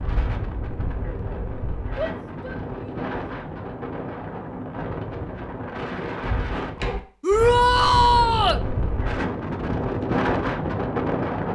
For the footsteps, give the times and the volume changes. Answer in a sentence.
The footsteps can't be heard in this clip.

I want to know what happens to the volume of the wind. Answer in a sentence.
The loudness of the wind goes up.